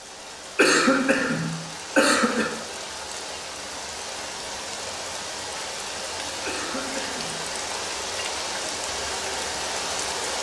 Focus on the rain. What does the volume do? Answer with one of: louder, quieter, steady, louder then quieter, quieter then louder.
louder.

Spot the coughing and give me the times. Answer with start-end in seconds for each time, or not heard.
0.6-2.5, 6.5-7.4.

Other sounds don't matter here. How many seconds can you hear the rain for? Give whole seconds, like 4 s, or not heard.
10 s.